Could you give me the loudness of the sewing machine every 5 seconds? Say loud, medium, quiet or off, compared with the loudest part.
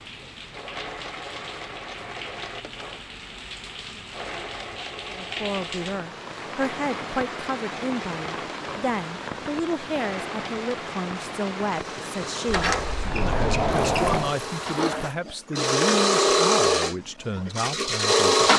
quiet, quiet, quiet, loud.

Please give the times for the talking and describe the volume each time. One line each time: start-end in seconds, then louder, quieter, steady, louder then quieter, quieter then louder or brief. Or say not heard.
5.1-18.5 steady.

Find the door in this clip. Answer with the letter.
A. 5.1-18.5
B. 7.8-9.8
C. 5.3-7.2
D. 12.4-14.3
D.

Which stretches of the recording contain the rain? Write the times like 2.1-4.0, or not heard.
0.0-15.2.